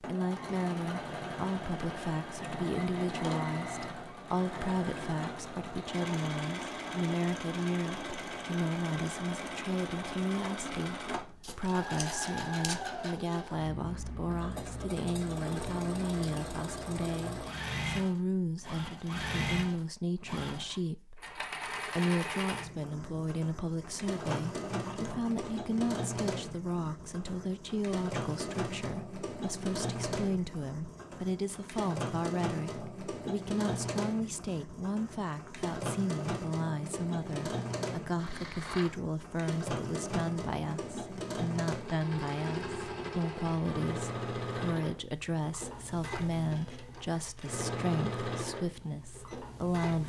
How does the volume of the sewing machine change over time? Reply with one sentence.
The volume of the sewing machine stays about the same.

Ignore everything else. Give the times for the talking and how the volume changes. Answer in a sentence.
You can hear the talking from 0.0 to 50.0 s, at a steady volume.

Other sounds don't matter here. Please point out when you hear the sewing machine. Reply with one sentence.
The sewing machine can be heard from 0.0 to 50.0 s.